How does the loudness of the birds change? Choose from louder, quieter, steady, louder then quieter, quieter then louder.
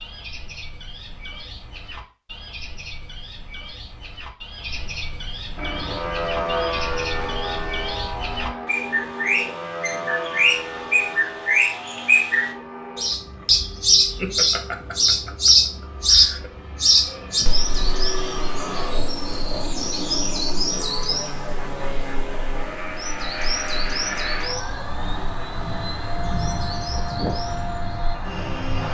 louder then quieter.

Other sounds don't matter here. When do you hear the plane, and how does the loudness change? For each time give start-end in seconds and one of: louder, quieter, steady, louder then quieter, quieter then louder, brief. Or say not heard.
5.5-28.8 quieter then louder.